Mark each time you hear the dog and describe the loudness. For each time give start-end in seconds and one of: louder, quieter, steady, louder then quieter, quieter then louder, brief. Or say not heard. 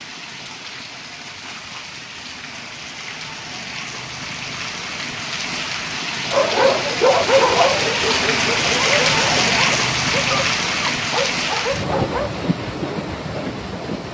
6.3-12.3 quieter.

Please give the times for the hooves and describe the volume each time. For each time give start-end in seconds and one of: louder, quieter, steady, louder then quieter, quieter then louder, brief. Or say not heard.
not heard.